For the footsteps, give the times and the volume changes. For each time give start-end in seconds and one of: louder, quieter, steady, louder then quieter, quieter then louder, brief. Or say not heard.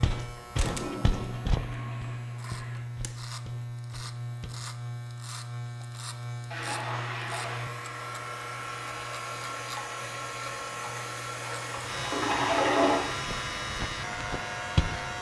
0.0-4.7 quieter
13.1-15.1 brief.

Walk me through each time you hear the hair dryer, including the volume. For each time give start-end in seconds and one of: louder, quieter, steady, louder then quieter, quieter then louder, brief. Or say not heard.
7.5-15.1 steady.